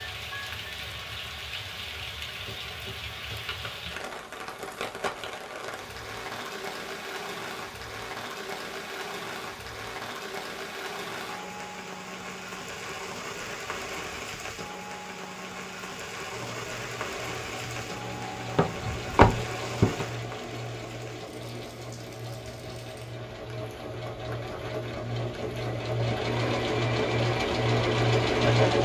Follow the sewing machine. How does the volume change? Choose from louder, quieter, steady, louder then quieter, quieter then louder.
louder.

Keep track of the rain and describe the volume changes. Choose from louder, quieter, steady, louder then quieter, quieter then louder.
quieter.